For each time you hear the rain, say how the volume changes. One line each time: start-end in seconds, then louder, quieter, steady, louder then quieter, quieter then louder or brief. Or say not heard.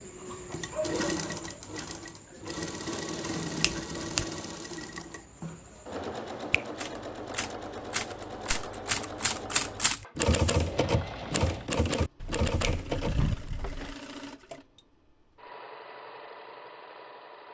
not heard.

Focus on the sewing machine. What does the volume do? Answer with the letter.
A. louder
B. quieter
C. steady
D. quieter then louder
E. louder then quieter
B.